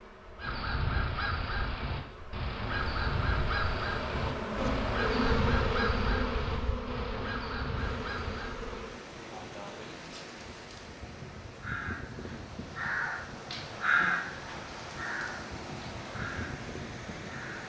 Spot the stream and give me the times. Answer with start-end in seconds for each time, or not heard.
7.8-17.6.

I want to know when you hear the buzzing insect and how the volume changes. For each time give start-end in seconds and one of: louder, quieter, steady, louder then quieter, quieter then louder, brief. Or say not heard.
0.0-17.4 louder then quieter.